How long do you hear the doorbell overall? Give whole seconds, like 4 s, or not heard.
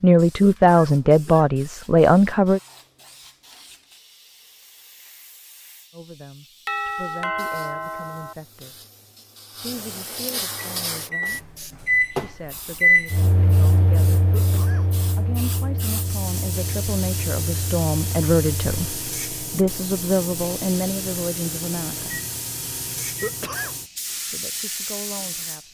2 s.